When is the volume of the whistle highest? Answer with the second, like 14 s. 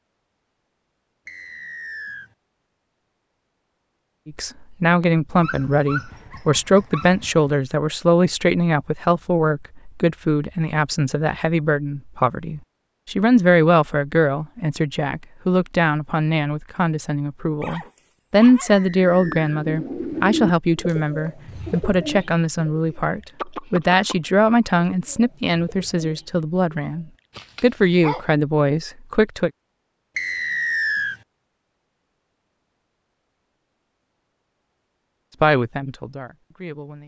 31 s.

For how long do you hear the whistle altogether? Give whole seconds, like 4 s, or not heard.
3 s.